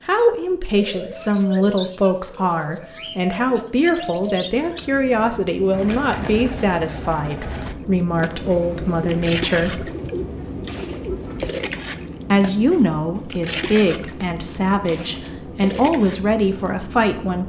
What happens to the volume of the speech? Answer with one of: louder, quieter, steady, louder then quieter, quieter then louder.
steady.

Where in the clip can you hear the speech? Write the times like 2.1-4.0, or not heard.
0.1-9.8, 12.3-17.4.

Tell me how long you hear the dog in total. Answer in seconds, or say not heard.
not heard.